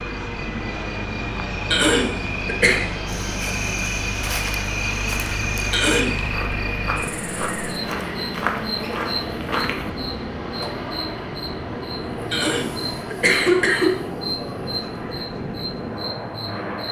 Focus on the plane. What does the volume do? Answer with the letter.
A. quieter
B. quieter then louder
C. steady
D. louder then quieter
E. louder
C.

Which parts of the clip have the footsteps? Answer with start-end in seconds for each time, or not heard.
3.0-9.9.